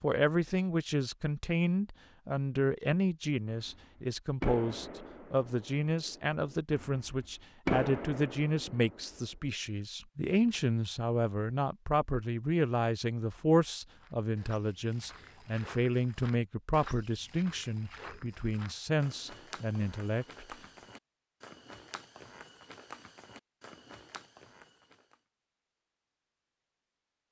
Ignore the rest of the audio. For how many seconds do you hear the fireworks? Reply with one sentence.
You can hear the fireworks for 6 seconds altogether.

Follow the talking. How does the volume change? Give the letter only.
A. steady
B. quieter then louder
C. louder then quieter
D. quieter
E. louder
A.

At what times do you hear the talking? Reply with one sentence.
You can hear the talking from 0.0 to 20.6 s.